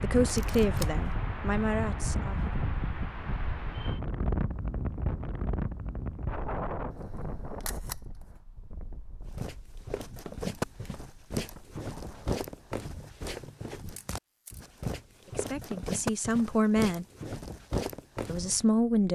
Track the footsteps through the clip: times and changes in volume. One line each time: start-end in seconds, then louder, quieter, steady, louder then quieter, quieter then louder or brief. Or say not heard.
9.3-18.6 quieter then louder.